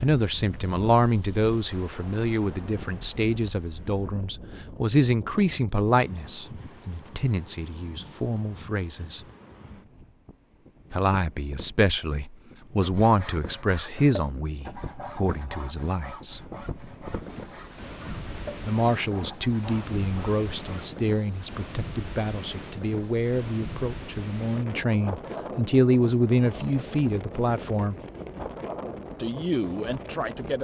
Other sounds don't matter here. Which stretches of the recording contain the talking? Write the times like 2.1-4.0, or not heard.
0.0-9.2, 10.9-16.4, 18.6-28.0, 29.1-30.5.